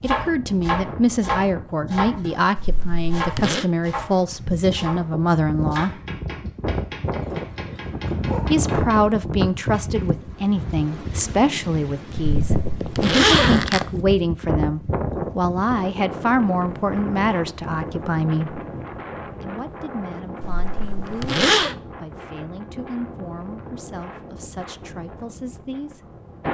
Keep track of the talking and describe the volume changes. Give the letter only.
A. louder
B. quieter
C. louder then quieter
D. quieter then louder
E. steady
B.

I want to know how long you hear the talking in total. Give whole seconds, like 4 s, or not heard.
23 s.